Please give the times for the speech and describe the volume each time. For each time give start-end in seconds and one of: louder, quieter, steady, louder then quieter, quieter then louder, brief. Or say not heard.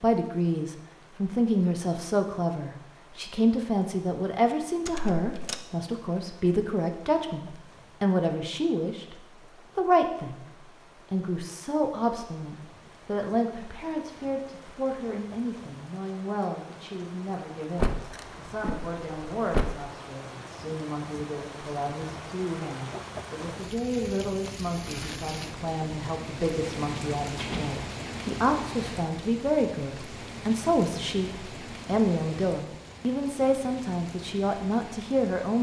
0.0-35.5 quieter then louder.